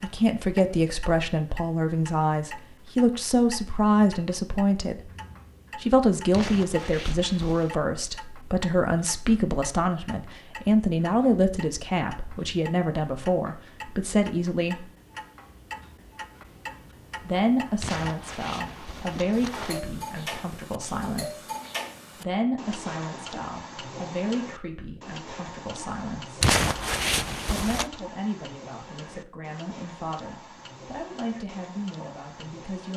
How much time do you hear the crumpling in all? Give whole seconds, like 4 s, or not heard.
5 s.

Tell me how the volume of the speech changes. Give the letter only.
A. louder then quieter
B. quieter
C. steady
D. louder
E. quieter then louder
B.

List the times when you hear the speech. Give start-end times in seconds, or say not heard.
0.0-5.1, 5.8-14.8, 17.2-21.5, 22.1-26.4, 27.5-32.9.